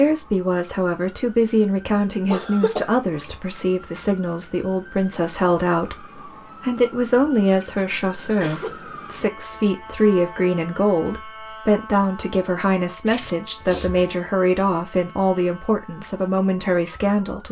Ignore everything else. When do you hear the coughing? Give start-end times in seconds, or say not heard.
2.3-2.9, 8.2-8.8, 13.1-14.1.